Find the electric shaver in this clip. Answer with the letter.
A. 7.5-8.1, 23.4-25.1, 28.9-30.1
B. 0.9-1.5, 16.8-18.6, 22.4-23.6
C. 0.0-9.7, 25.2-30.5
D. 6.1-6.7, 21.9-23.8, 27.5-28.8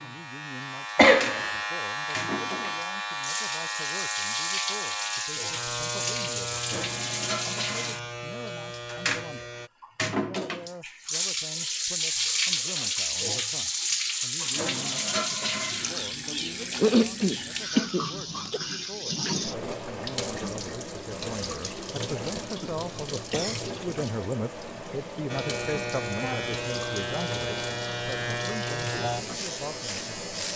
C.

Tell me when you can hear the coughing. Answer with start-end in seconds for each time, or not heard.
0.9-1.5, 16.8-18.6, 22.4-23.6.